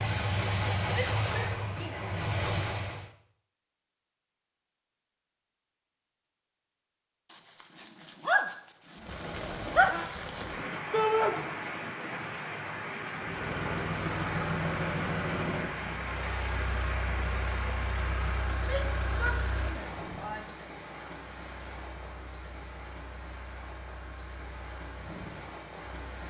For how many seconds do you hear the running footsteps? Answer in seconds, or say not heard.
not heard.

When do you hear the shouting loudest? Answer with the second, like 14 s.
11 s.